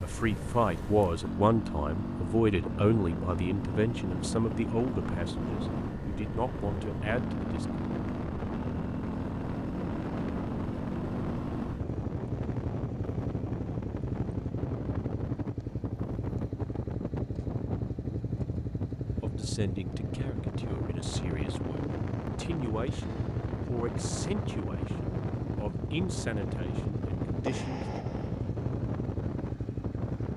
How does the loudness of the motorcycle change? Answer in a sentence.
The volume of the motorcycle stays about the same.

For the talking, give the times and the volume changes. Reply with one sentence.
You can hear the talking from 0.0 to 7.8 s, getting quieter; and from 19.2 to 27.9 s, at a steady volume.